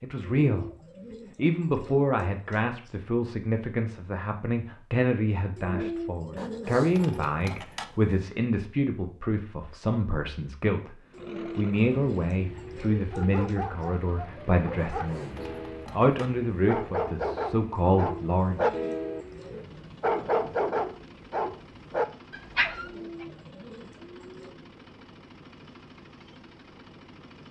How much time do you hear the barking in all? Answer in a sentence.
The barking can be heard for 10 seconds in total.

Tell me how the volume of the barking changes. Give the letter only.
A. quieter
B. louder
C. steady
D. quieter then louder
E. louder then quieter
B.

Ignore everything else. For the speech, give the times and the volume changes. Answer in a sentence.
You can hear the speech briefly from 0.0 to 0.7 s; and from 1.4 to 18.7 s, at a steady volume.